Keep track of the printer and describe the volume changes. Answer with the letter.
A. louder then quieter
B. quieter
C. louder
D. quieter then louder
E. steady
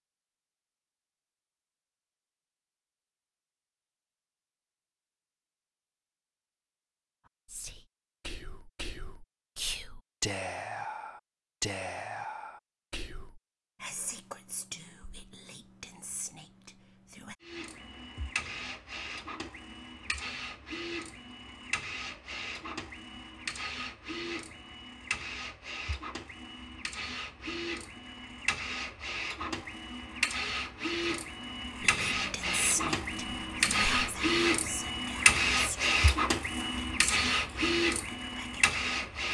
C.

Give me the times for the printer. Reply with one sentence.
You can hear the printer from 17.4 to 39.2 s.